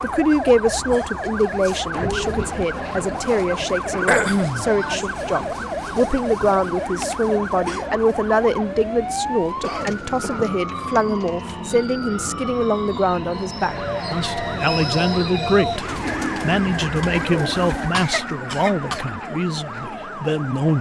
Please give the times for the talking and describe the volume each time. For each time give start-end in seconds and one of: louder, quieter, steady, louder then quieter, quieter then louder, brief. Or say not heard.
0.0-20.7 steady.